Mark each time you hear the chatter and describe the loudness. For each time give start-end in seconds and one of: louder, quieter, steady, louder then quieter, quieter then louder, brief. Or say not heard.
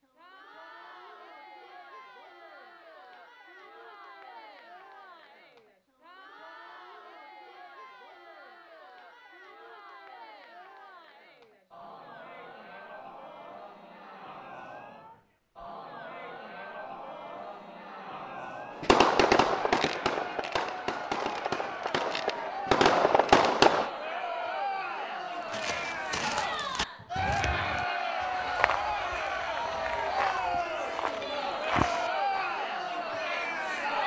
0.0-34.0 louder.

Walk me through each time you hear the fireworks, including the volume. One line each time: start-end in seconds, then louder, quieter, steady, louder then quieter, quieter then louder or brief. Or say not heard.
18.8-23.9 quieter then louder.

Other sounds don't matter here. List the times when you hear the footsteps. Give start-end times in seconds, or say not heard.
25.5-32.5.